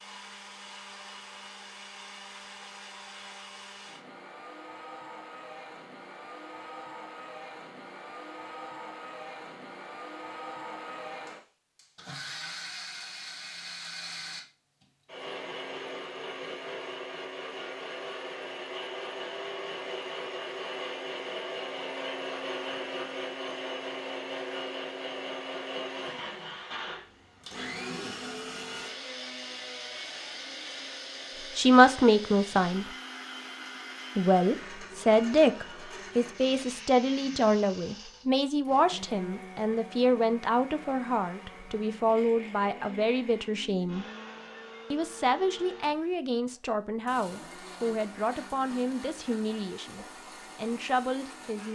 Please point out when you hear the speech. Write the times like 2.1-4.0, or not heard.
31.6-32.9, 34.1-44.0, 44.9-51.6.